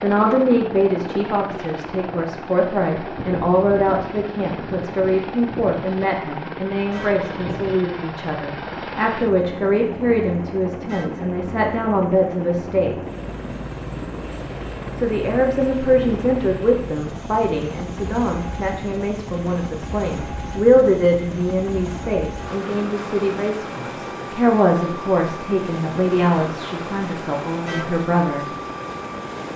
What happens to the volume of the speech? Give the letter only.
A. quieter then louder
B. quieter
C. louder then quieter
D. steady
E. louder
D.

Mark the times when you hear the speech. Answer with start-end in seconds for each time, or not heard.
0.0-12.9, 14.9-28.4.